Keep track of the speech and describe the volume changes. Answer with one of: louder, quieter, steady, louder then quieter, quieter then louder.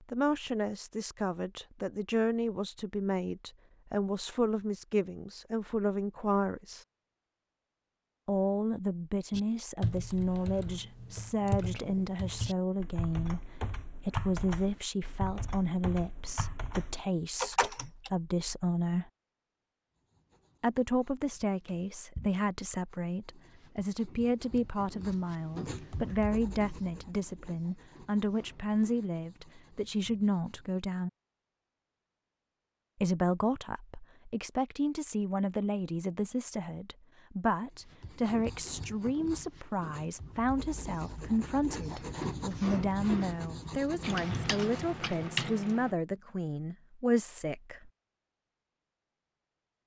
steady.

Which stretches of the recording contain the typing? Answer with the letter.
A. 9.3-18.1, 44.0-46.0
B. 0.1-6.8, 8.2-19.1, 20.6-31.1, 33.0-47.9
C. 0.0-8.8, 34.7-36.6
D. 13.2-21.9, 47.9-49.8
A.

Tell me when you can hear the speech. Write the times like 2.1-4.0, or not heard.
0.1-6.8, 8.2-19.1, 20.6-31.1, 33.0-47.9.